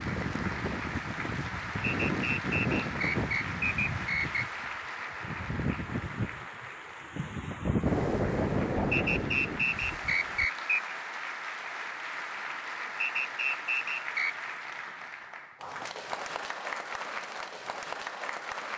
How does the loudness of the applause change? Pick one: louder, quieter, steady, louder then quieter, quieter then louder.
steady.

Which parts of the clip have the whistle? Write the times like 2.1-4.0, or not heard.
1.8-4.5, 8.9-10.9, 13.0-14.3.